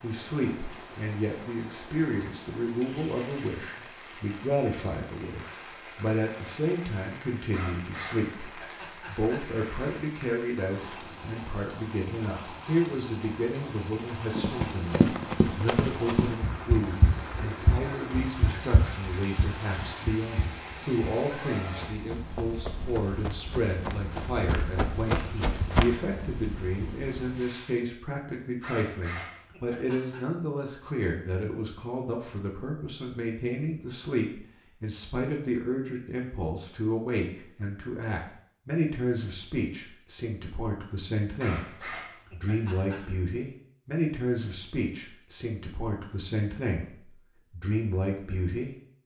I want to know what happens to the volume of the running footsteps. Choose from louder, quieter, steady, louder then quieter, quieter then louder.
quieter then louder.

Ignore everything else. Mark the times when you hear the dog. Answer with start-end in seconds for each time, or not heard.
7.5-9.4, 28.6-30.2, 41.4-43.0.